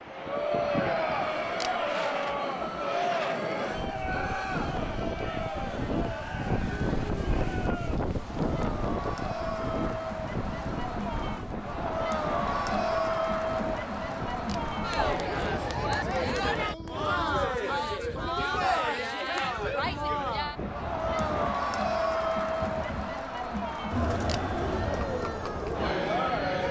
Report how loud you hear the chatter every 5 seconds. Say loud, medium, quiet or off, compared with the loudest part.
loud, medium, loud, loud, loud, loud.